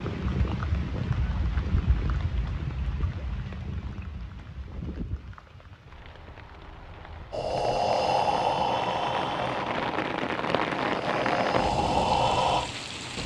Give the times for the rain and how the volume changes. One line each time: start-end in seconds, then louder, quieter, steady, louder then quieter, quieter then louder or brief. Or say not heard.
0.0-13.2 quieter then louder.